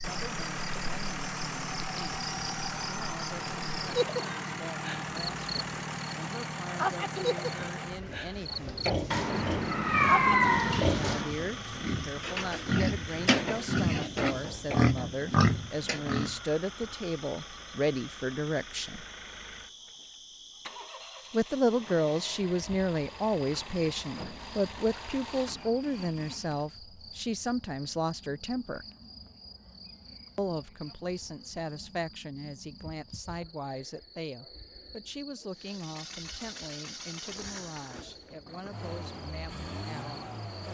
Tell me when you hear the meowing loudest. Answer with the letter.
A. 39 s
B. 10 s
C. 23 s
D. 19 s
B.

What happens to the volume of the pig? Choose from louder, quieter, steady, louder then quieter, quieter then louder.
louder.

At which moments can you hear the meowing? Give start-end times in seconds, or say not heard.
9.1-11.3.